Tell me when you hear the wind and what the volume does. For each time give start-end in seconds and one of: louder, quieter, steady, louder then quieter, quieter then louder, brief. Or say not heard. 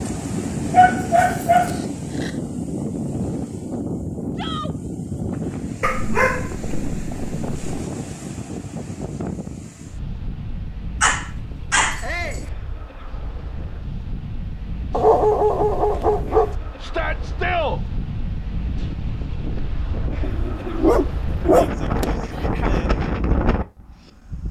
0.0-24.4 quieter then louder.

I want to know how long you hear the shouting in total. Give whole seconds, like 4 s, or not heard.
2 s.